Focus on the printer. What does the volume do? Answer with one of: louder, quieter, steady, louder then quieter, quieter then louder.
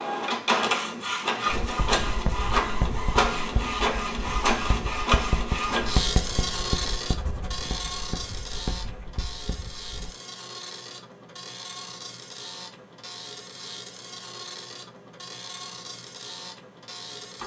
quieter.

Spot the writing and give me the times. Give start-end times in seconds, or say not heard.
1.6-10.2.